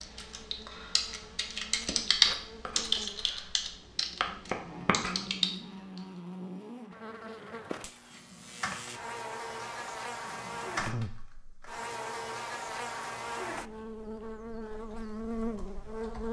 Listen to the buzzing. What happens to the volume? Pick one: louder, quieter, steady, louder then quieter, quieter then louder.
louder.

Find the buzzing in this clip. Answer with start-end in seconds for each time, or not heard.
0.0-16.2.